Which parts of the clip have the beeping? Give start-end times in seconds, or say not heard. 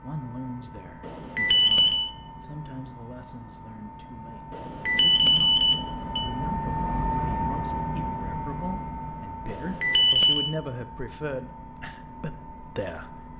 1.0-2.1, 4.5-6.3, 9.4-10.5.